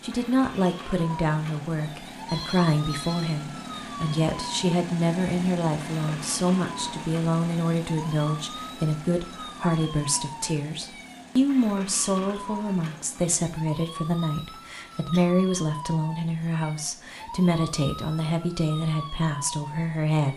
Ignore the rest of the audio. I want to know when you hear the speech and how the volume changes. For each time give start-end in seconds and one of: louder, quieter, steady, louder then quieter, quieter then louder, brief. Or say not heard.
0.0-20.3 steady.